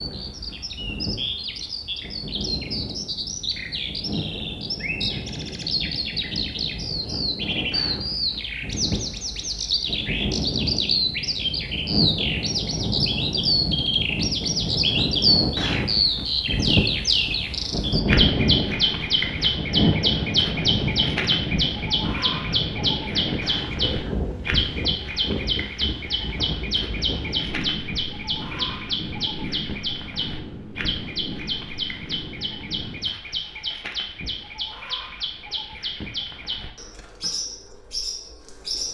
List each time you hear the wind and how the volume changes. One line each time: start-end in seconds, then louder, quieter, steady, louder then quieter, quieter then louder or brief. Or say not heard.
0.0-33.1 louder then quieter.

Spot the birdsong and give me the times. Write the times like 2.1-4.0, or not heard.
0.0-38.8.